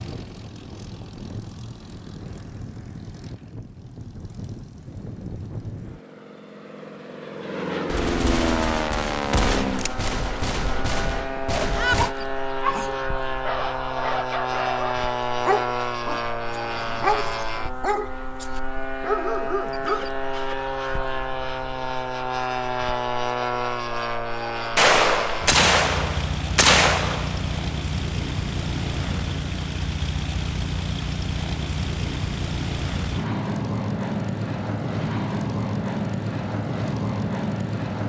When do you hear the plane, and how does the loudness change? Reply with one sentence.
You can hear the plane from 0.0 to 38.0 s, getting louder.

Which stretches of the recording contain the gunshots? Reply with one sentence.
You can hear the gunshots from 7.8 to 12.2 s and from 24.8 to 27.6 s.